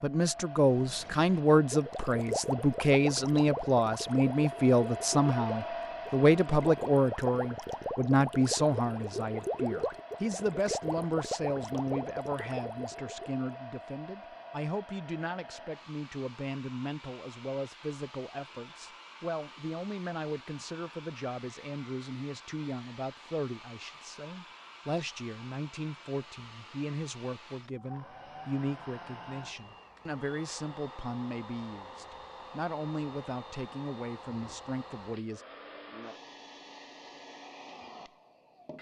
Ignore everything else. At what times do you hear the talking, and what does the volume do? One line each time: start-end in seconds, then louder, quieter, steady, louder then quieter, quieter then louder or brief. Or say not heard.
0.0-35.5 quieter.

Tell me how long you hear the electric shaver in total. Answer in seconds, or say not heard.
not heard.